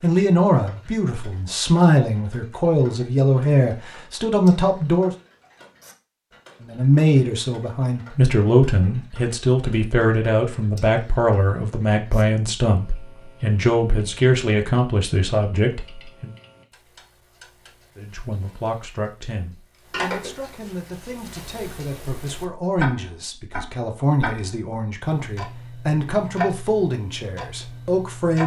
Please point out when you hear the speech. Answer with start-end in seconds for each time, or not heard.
0.0-5.1, 6.6-16.3, 17.9-28.4.